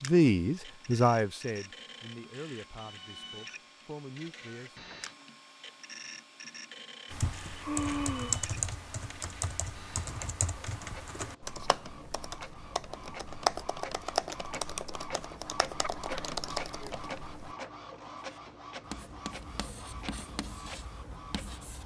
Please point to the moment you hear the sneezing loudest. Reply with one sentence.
The loudest moment of the sneezing is at 8 seconds.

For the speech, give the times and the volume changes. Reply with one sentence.
You can hear the speech from 0.0 to 4.8 s, getting quieter then louder.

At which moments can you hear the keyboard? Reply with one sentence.
The keyboard can be heard from 7.1 to 17.6 s.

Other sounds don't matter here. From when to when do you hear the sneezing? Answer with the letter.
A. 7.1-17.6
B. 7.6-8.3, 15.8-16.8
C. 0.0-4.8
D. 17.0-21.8
B.